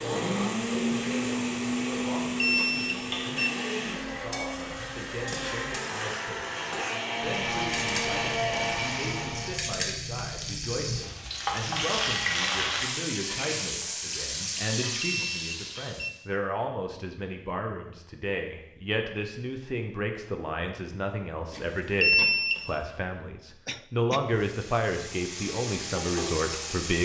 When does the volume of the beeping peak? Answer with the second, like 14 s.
22 s.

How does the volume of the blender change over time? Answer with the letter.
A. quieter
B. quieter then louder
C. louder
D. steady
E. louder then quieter
B.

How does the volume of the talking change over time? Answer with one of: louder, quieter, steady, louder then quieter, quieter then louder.
louder.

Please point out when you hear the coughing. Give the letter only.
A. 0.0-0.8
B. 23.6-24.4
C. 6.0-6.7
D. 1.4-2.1
B.